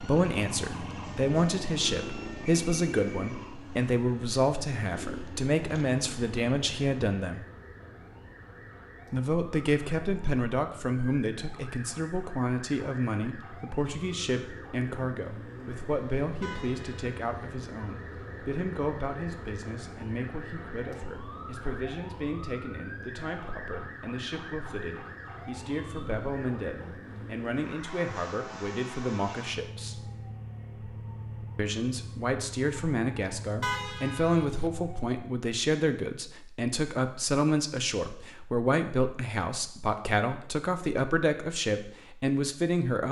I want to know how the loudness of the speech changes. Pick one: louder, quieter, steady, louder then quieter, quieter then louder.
quieter then louder.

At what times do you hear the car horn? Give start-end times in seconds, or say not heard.
16.4-17.5, 33.6-34.7.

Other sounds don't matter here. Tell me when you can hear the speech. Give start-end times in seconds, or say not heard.
0.0-7.4, 9.1-30.1, 31.6-43.0.